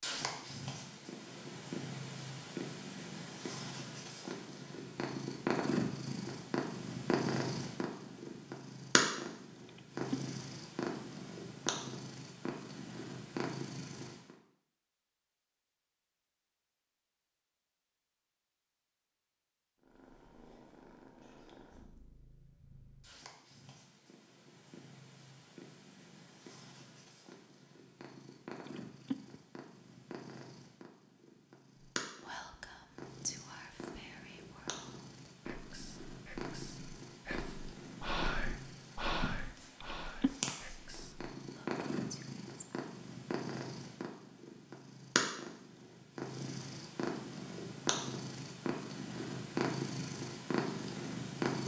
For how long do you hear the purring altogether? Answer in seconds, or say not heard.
46 s.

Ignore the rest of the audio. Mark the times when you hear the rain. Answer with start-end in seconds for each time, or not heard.
not heard.